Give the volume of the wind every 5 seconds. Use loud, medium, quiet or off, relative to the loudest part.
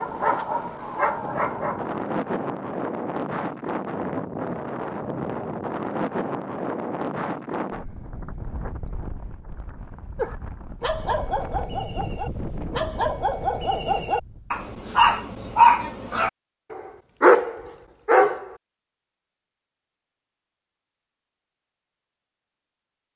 loud, loud, medium, off, off.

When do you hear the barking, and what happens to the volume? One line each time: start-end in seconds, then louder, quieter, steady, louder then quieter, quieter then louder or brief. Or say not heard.
0.0-2.0 brief
10.2-18.5 louder.